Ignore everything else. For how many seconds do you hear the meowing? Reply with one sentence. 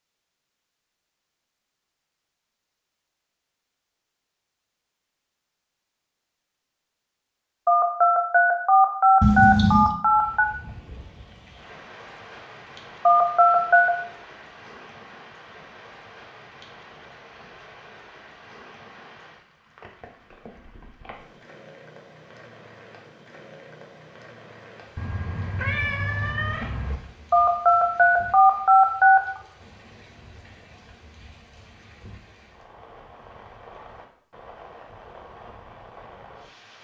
The meowing can be heard for 3 seconds in total.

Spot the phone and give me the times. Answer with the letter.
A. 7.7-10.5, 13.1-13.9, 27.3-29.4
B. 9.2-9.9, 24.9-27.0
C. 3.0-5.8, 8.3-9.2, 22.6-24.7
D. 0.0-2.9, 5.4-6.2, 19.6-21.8
A.